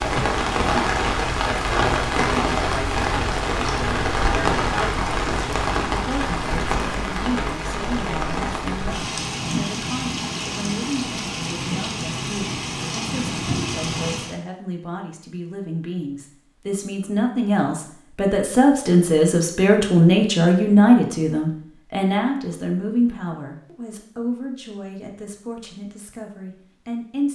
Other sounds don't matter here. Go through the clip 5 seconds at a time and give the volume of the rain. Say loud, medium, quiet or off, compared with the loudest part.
loud, loud, medium, off, off, off.